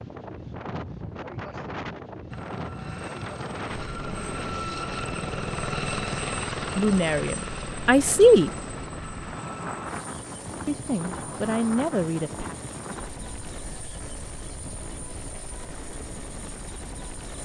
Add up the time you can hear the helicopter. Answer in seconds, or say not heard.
15 s.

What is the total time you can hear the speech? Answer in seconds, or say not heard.
4 s.